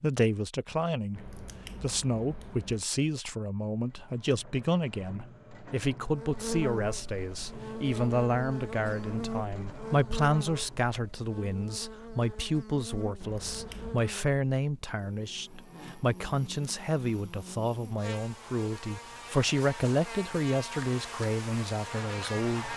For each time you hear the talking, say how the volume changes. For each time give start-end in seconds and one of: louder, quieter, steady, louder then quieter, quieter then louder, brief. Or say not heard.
0.0-22.7 steady.